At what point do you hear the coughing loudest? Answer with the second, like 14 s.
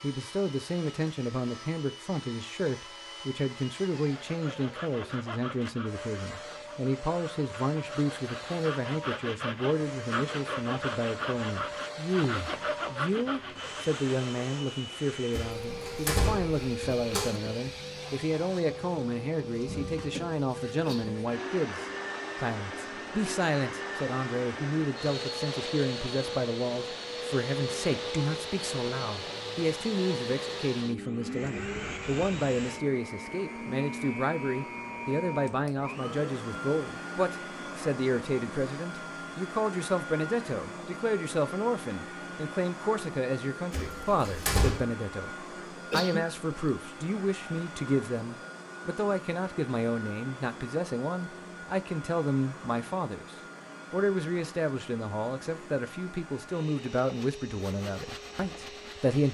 46 s.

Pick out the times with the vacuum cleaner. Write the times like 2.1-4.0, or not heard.
0.0-59.2.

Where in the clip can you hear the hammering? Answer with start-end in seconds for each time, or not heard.
not heard.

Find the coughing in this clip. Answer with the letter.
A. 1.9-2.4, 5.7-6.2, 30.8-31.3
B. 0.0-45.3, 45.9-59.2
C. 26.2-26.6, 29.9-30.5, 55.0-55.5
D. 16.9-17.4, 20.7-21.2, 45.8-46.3
D.